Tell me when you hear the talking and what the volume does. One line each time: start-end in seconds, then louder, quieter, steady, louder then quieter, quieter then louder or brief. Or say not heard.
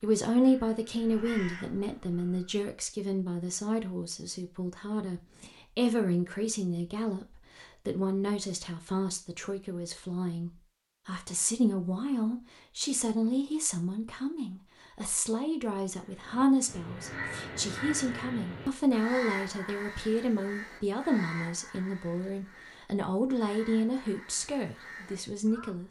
0.0-25.8 steady.